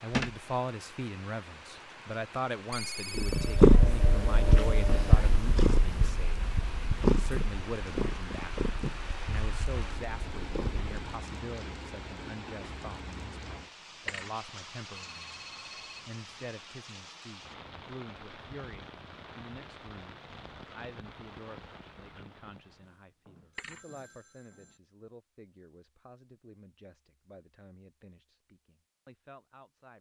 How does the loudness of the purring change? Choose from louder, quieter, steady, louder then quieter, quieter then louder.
quieter.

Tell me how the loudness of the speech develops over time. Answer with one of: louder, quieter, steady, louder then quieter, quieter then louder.
quieter.